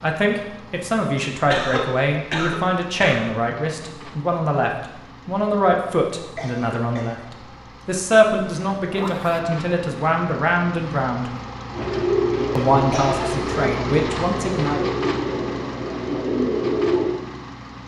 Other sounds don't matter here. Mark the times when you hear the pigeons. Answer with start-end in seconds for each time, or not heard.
11.7-17.1.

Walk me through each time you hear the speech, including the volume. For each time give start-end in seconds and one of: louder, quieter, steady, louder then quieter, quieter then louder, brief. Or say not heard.
0.0-11.3 steady
12.6-14.8 brief.